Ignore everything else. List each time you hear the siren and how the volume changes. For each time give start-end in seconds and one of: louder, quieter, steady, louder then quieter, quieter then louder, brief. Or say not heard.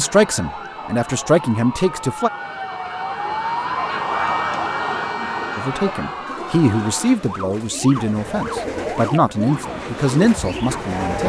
0.0-11.2 louder then quieter.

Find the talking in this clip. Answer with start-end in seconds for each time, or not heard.
0.0-2.3, 5.5-11.2.